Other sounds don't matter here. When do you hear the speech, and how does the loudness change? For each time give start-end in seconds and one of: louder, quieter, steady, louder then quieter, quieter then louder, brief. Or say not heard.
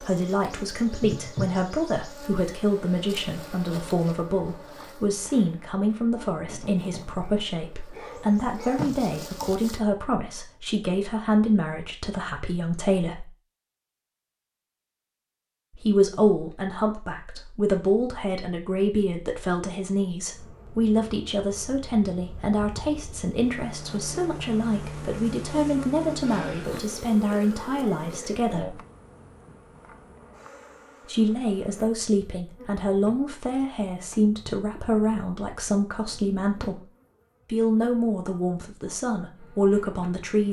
0.0-13.2 steady
15.8-28.8 steady
31.1-36.9 steady
37.5-40.4 brief.